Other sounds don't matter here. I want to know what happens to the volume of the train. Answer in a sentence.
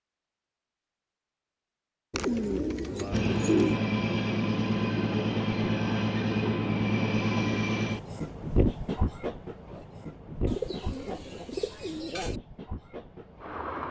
The volume of the train goes down.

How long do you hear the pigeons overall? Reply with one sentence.
The pigeons can be heard for 4 seconds in total.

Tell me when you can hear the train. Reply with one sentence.
The train can be heard from 3.1 to 13.8 s.